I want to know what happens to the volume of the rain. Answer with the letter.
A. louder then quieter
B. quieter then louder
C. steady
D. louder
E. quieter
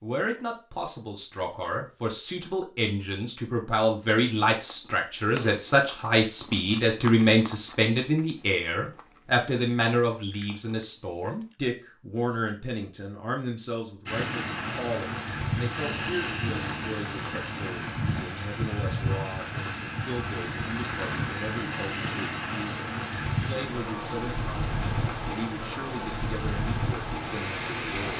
C.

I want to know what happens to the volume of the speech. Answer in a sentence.
The loudness of the speech goes down.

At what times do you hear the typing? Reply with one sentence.
You can't hear the typing here.